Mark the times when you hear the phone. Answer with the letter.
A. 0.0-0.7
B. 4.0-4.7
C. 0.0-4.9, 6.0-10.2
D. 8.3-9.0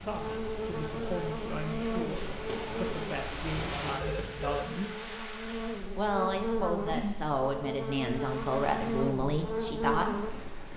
B.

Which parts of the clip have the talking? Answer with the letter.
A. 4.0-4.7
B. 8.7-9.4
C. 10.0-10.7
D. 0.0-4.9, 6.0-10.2
D.